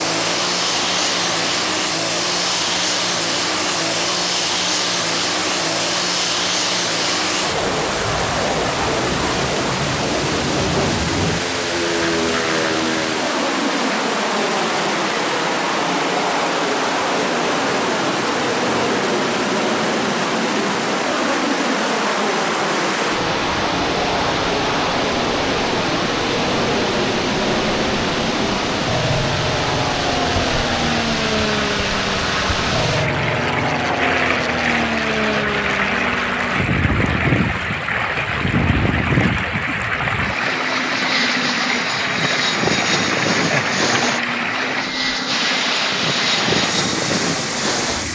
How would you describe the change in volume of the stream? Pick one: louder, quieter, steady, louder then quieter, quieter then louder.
steady.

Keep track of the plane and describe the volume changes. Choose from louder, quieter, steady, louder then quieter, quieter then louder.
steady.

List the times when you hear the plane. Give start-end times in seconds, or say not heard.
0.0-48.1.